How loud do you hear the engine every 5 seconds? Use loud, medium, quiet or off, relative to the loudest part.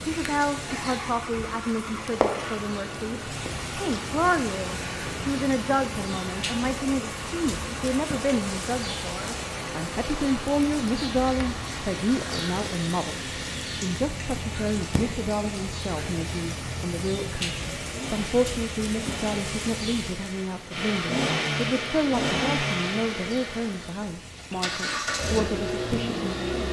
medium, medium, medium, medium, loud, loud.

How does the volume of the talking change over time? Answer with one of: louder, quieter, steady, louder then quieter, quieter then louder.
steady.